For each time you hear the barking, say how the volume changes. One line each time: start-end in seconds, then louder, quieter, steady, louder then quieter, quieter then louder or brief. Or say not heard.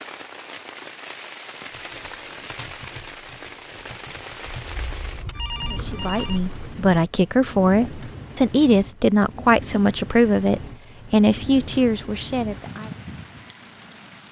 not heard.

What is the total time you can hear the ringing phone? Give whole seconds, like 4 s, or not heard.
2 s.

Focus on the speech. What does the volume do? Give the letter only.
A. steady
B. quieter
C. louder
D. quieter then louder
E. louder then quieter
A.